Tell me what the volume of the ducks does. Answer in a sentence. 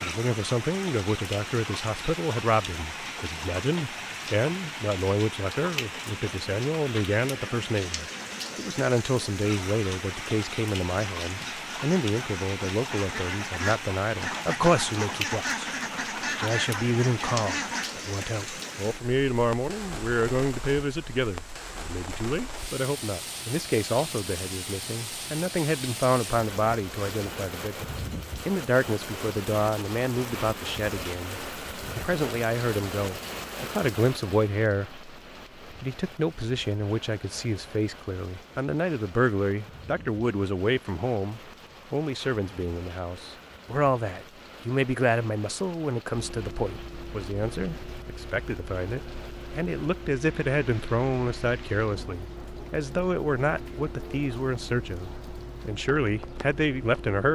The volume of the ducks goes up.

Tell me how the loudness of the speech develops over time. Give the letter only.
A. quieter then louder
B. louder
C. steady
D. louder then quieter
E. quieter
C.